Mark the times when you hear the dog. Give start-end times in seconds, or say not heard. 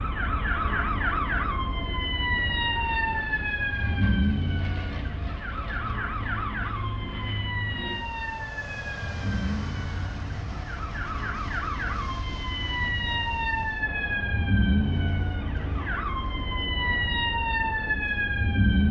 not heard.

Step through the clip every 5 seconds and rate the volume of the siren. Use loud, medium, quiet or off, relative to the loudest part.
loud, medium, loud, loud.